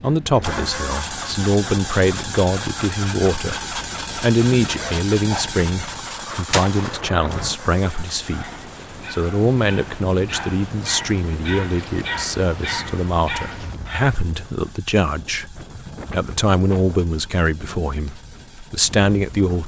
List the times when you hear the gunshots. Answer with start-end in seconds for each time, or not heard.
6.5-7.5.